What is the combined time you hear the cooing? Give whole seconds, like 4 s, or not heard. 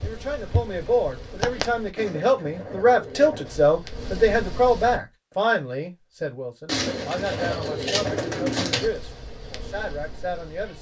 4 s.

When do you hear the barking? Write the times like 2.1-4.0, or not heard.
not heard.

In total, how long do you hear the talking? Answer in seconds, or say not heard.
11 s.